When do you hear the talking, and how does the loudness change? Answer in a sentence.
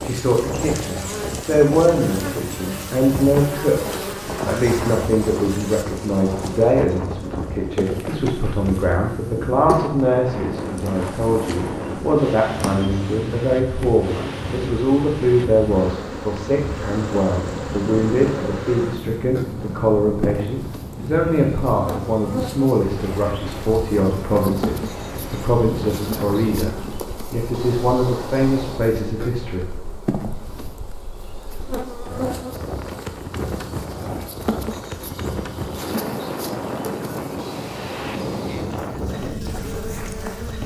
You can hear the talking from 0.0 to 29.6 s, at a steady volume.